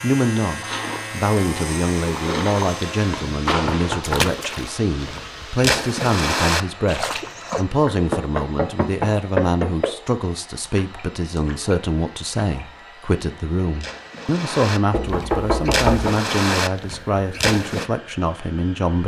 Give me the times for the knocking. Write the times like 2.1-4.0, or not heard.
3.6-4.3, 7.8-9.8, 14.9-16.1.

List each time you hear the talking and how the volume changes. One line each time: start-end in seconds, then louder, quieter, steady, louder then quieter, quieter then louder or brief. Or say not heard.
0.0-19.0 steady.